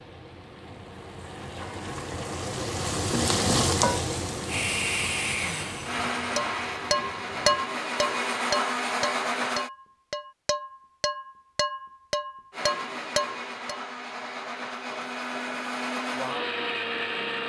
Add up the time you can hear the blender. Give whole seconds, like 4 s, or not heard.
10 s.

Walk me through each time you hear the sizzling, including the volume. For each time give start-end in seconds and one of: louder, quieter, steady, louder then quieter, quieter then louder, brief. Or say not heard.
0.0-7.6 louder then quieter.